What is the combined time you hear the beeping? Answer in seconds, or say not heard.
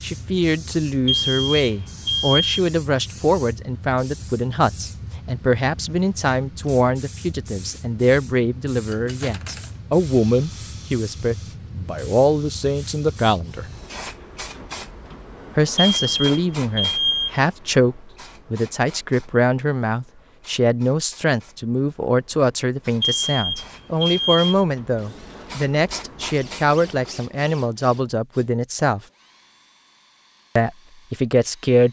5 s.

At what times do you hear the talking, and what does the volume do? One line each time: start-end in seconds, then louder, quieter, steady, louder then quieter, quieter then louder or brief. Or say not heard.
0.0-13.7 steady
15.6-29.0 steady
30.6-31.8 brief.